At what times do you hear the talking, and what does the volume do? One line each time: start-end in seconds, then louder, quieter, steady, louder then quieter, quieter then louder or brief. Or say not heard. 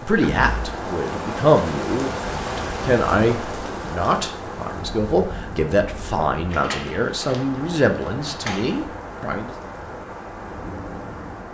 0.0-9.6 steady.